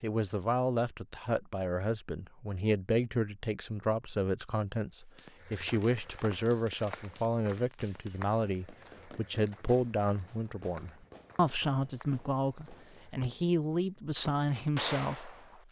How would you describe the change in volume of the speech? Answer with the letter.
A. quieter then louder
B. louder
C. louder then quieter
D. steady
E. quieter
D.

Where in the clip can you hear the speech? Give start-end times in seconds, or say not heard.
0.0-15.3.